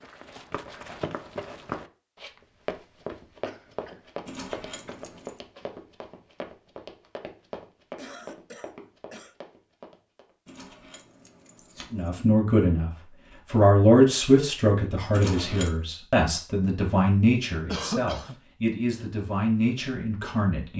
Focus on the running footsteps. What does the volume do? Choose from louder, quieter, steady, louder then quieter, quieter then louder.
quieter.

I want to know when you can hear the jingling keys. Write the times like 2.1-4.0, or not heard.
4.2-5.4, 10.4-12.1, 15.1-15.8.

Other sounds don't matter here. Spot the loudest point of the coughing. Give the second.
18 s.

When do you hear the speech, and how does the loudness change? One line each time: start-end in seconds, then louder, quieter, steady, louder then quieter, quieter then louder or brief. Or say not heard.
11.9-12.9 brief
13.5-20.7 quieter.